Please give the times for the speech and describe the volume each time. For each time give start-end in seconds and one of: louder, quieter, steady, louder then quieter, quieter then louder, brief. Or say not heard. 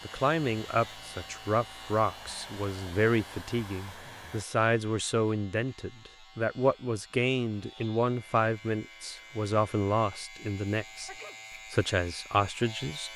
0.1-11.1 steady
11.7-13.1 brief.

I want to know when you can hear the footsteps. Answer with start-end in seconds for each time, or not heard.
not heard.